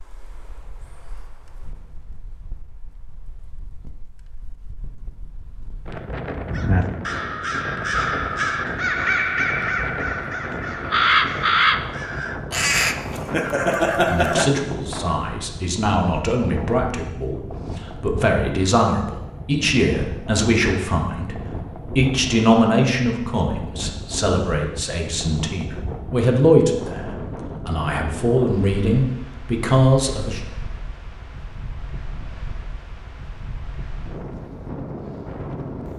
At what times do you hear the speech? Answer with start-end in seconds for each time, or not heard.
13.9-30.4.